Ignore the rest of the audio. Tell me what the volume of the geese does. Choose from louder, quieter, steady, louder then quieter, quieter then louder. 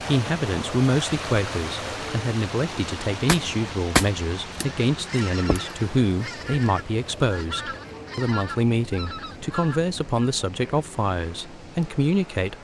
quieter.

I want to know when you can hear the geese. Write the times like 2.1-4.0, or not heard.
3.2-10.3.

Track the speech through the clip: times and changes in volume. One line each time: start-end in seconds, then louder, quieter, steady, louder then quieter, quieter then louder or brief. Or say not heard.
0.0-12.5 steady.